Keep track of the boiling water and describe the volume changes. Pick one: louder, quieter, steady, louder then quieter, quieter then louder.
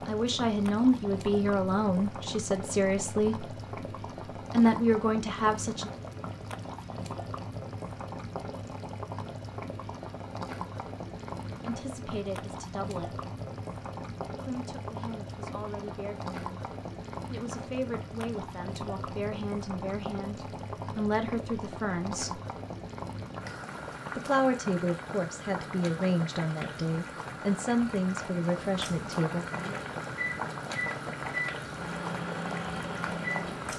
steady.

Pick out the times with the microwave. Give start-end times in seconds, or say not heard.
29.5-33.7.